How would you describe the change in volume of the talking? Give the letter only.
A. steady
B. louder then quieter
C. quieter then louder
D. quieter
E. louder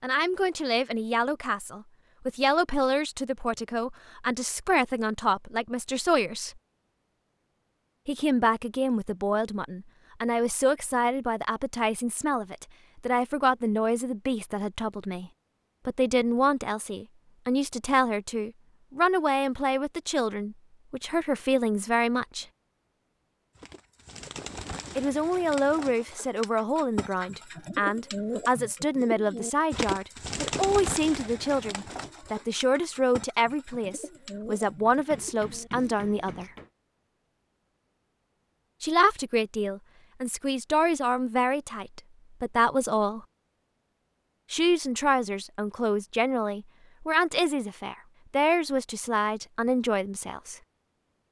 A.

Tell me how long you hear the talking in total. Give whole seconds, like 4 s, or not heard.
43 s.